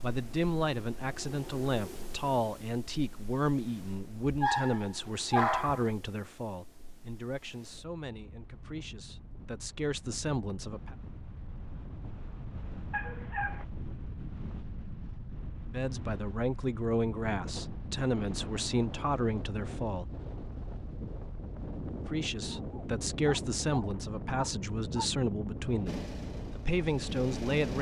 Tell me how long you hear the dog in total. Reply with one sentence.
The dog can be heard for 5 seconds in total.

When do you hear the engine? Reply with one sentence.
The engine can be heard from 25.9 to 27.7 s.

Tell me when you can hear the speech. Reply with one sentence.
You can hear the speech from 0.0 to 10.9 s, from 15.7 to 20.1 s and from 22.1 to 27.7 s.